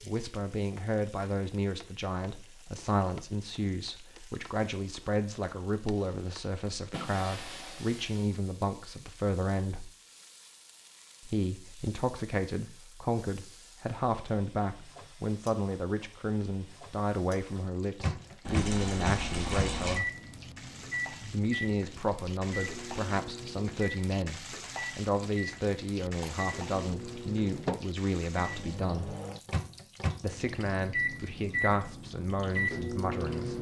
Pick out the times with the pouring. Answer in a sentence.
You can hear the pouring from 18.4 to 20.0 s.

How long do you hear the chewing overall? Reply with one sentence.
The chewing can't be heard in this clip.